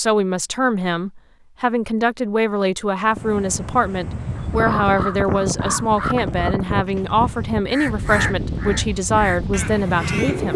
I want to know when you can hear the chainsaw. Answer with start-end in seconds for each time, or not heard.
not heard.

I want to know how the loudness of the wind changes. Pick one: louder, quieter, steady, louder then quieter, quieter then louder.
steady.